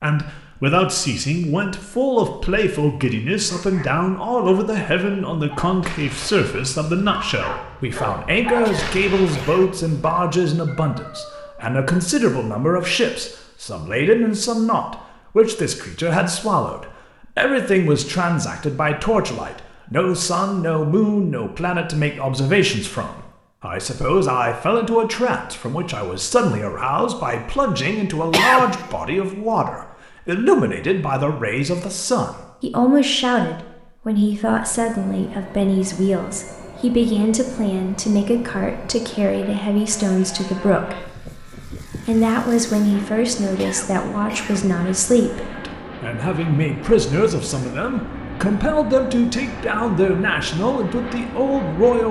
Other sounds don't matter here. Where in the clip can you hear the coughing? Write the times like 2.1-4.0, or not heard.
8.6-9.7, 28.3-28.9, 43.5-44.6.